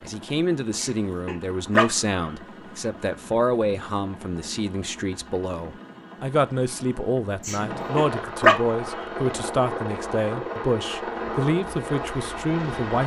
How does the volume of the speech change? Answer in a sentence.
The volume of the speech stays about the same.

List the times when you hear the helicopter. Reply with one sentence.
You can hear the helicopter from 0.0 to 13.0 s.